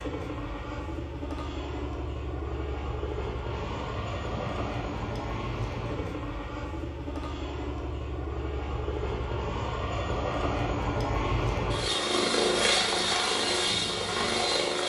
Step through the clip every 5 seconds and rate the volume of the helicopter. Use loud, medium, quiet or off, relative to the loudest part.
medium, medium, loud.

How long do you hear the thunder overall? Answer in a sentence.
You can hear the thunder for 3 seconds altogether.